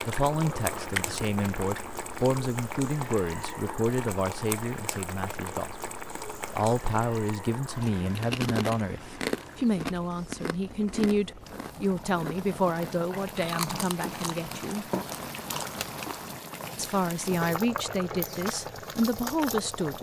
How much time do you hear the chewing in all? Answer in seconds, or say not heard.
11 s.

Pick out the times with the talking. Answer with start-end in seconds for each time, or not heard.
0.0-5.9, 6.5-14.8, 16.8-19.9.